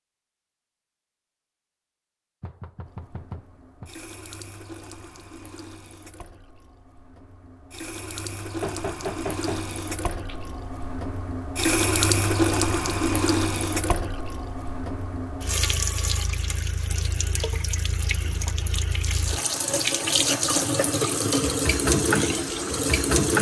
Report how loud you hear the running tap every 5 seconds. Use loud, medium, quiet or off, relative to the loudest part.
quiet, quiet, loud, medium, loud.